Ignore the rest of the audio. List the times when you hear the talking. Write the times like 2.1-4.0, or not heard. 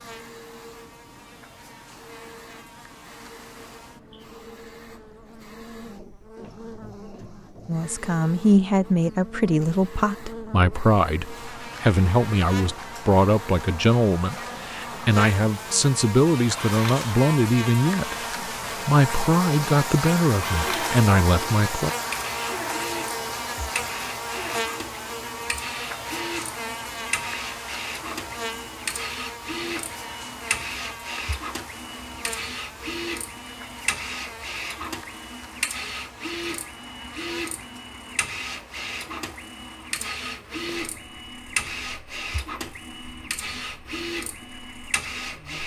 7.7-21.9.